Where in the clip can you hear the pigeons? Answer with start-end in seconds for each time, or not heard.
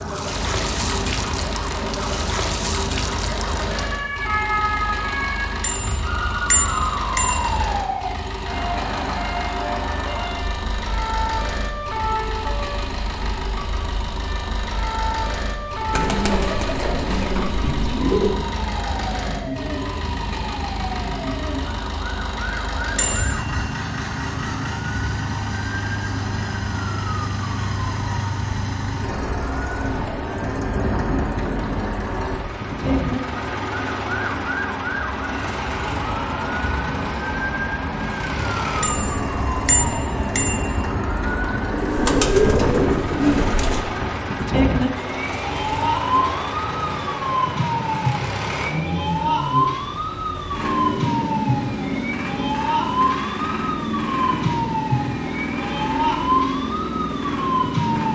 15.9-18.3, 41.7-43.9.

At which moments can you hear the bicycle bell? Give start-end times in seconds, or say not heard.
5.6-7.7, 22.9-23.6, 38.8-40.9.